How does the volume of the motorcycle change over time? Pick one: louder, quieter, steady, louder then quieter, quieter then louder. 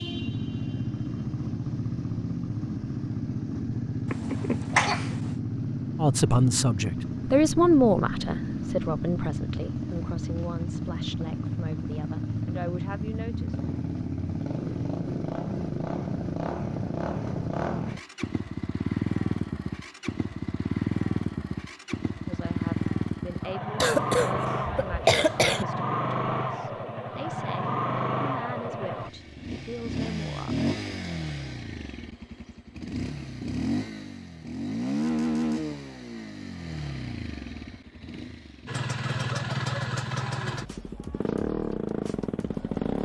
steady.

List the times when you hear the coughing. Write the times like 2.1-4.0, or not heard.
4.1-5.3, 23.8-25.6.